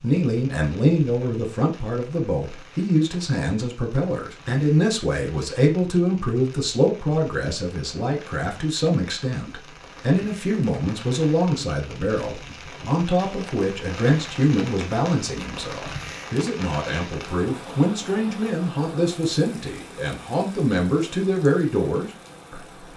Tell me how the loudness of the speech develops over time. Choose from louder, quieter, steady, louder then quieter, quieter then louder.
steady.